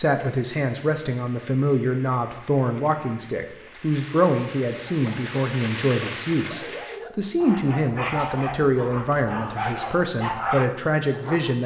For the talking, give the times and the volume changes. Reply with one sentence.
The talking can be heard from 0.0 to 11.6 s, at a steady volume.